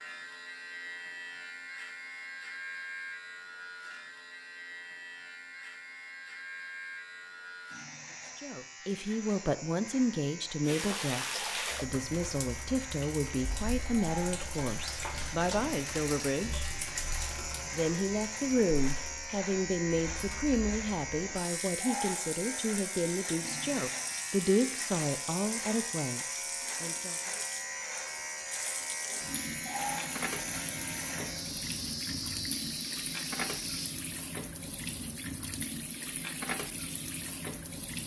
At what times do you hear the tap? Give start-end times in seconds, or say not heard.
10.7-38.0.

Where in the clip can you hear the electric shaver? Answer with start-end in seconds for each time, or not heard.
0.0-34.0.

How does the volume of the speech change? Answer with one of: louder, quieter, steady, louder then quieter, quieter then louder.
steady.